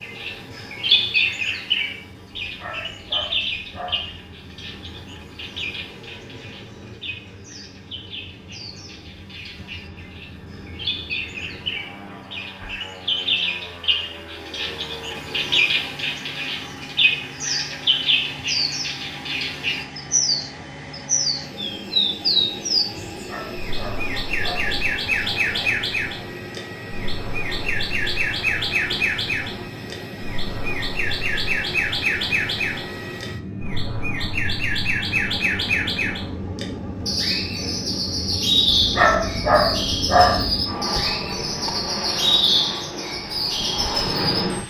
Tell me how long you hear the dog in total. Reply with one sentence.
You can hear the dog for 5 seconds altogether.